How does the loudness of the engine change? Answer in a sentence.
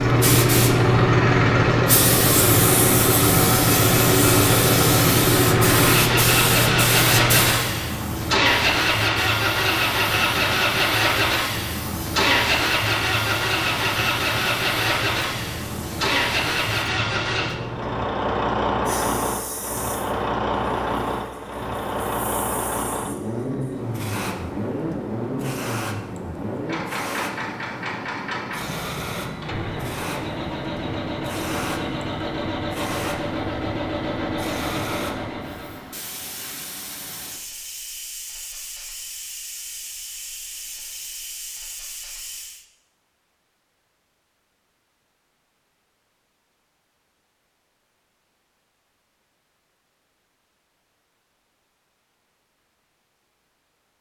The loudness of the engine goes down.